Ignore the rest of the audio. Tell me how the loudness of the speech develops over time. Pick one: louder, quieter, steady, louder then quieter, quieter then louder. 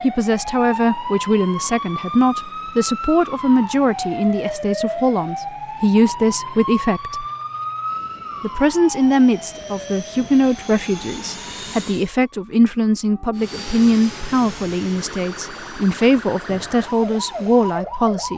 steady.